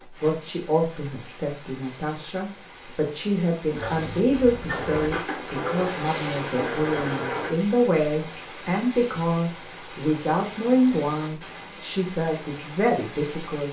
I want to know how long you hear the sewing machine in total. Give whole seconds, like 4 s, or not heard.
3 s.